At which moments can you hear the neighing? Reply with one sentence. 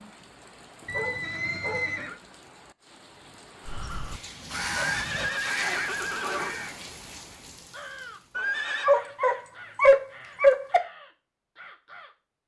The neighing can be heard from 0.8 to 2.2 s, from 4.8 to 6.5 s and from 8.3 to 8.9 s.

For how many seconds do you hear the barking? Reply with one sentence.
You can hear the barking for 5 seconds altogether.